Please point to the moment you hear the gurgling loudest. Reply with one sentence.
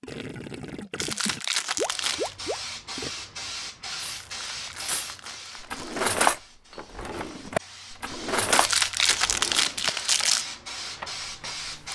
The loudest moment of the gurgling is at 2 seconds.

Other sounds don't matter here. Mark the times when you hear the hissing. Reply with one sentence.
You can hear the hissing from 1.6 to 11.9 s.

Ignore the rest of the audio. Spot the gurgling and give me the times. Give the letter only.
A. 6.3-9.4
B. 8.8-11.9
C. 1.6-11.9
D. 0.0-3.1
D.